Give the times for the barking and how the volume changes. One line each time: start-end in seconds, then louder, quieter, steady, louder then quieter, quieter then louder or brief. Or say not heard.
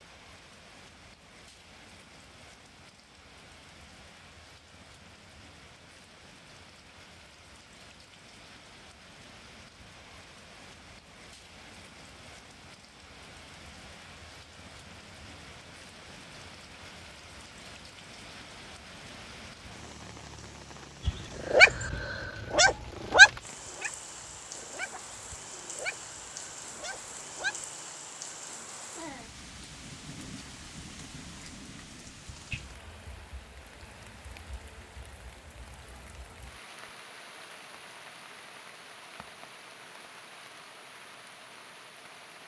21.1-27.6 louder then quieter.